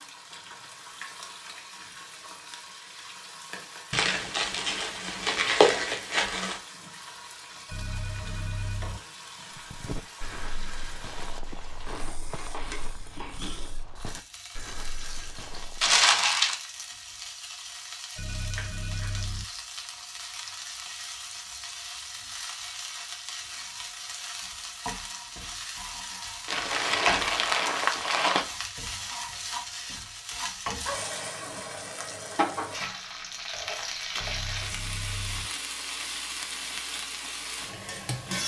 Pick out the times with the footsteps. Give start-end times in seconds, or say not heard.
9.6-16.0.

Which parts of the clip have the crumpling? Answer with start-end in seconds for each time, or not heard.
3.9-6.6, 15.8-16.6, 26.4-28.4.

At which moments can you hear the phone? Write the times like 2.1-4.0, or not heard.
7.7-9.0, 18.1-19.4, 34.1-35.5.